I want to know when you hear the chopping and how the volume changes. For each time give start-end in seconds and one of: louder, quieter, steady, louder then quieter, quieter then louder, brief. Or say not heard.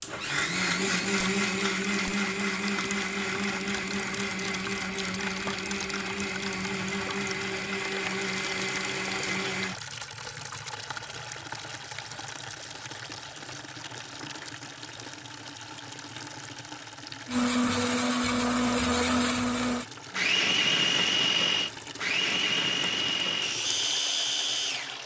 not heard.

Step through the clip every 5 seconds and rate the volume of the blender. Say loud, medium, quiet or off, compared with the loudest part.
loud, medium, off, loud, loud.